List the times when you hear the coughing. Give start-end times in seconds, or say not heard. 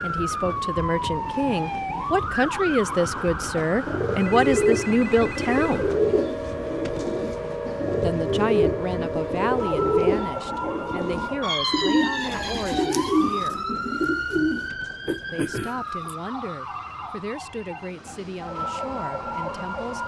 15.1-16.1.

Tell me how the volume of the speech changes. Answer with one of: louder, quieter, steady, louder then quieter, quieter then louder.
quieter.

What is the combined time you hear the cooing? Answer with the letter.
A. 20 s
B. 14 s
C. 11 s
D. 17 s
C.